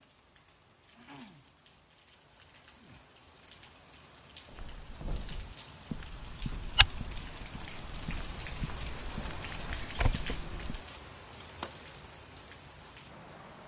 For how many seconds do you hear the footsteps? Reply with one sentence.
You can hear the footsteps for 6 seconds altogether.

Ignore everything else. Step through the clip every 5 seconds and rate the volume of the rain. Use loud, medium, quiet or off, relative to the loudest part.
medium, loud, loud.